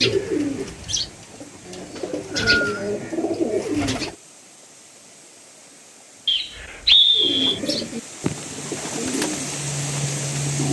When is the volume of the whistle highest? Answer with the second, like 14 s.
7 s.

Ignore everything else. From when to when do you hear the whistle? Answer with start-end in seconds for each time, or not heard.
1.9-2.9, 6.2-7.6.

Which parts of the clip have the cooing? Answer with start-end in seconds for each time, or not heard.
0.0-4.2, 7.2-10.6.